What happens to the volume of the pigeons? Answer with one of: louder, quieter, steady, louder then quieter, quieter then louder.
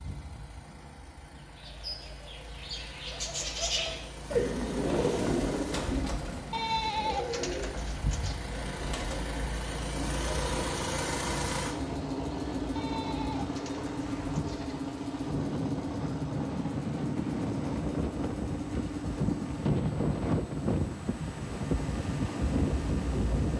louder then quieter.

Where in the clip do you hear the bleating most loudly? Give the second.
7 s.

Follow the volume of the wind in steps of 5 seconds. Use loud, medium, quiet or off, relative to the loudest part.
off, off, medium, loud, loud.